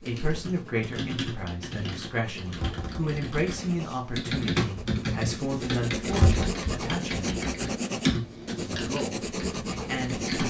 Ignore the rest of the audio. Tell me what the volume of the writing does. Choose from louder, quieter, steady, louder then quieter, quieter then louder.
louder.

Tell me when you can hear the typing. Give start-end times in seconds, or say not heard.
0.1-10.4.